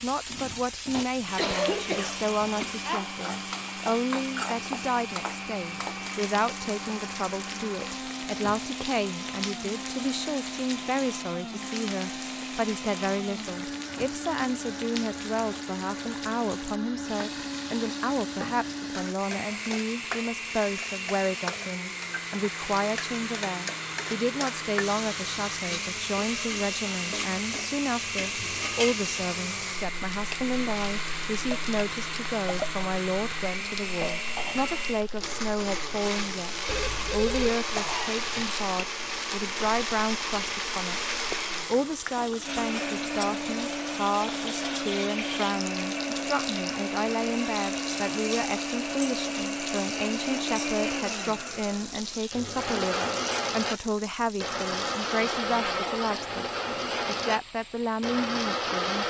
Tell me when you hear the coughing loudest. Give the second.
2 s.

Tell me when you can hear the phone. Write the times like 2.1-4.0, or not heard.
36.6-37.6.